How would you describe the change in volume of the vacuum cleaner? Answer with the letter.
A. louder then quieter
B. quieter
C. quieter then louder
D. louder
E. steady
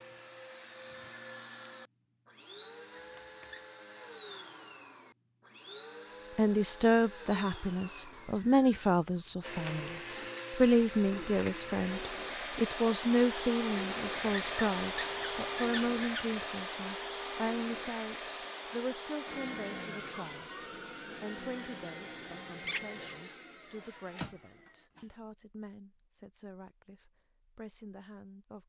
A.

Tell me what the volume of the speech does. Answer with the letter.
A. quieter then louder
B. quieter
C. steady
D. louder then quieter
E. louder
B.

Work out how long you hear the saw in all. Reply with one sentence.
You can't hear the saw here.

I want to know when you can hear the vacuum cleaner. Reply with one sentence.
The vacuum cleaner can be heard from 0.0 to 25.1 s.